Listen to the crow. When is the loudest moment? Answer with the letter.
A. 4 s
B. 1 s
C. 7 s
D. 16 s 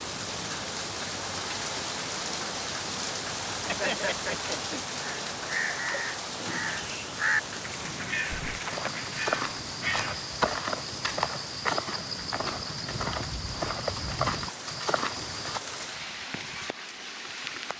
C.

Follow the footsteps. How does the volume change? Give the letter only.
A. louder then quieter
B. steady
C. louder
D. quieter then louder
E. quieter
B.